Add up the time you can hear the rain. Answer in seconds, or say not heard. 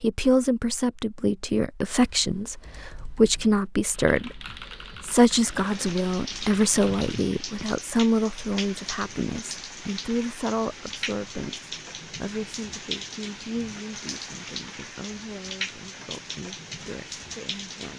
12 s.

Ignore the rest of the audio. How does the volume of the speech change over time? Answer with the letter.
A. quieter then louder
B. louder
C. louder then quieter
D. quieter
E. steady
D.